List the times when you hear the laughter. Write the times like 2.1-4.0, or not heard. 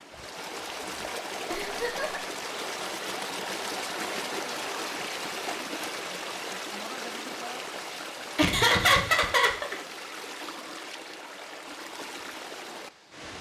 1.5-2.2, 8.3-9.8.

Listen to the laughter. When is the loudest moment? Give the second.
9 s.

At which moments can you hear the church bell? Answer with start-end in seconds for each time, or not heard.
not heard.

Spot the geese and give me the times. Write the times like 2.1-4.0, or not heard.
not heard.